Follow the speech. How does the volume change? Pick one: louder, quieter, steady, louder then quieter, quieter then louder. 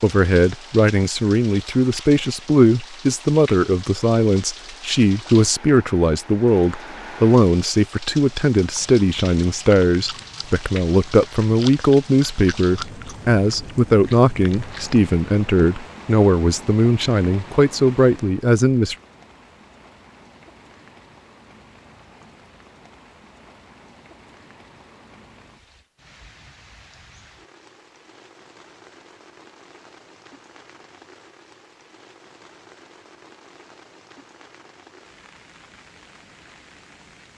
steady.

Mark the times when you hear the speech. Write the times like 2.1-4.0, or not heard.
0.0-18.9.